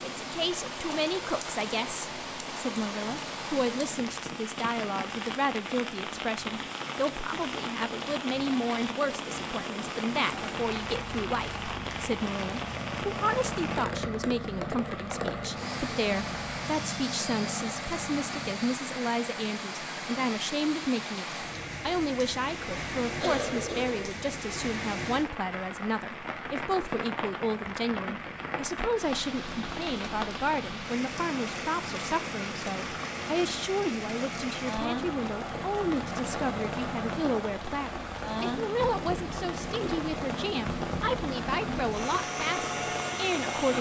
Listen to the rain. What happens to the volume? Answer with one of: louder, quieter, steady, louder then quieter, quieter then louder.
steady.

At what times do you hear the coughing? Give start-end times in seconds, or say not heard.
23.2-24.1.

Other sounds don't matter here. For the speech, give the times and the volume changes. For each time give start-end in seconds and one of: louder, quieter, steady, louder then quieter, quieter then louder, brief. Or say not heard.
0.0-43.7 steady.